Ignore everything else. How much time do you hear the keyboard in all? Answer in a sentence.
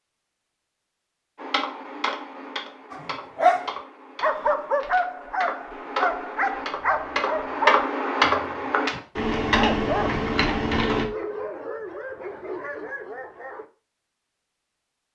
The keyboard can be heard for 10 seconds in total.